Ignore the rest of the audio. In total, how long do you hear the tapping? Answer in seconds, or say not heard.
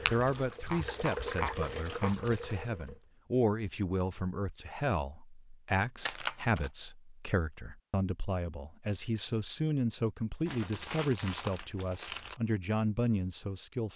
2 s.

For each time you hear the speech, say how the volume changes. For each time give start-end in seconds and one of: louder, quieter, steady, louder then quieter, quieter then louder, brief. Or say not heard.
0.1-13.9 steady.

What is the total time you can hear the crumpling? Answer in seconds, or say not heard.
5 s.